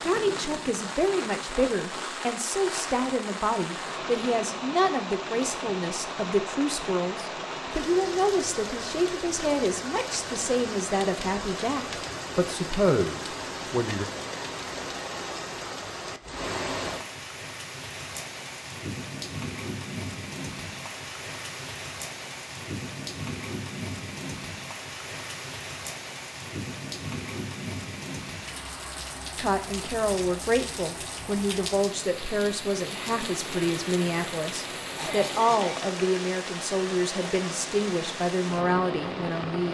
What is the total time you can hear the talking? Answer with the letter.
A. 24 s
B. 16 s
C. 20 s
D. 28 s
A.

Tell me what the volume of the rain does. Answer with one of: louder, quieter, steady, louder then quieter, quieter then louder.
steady.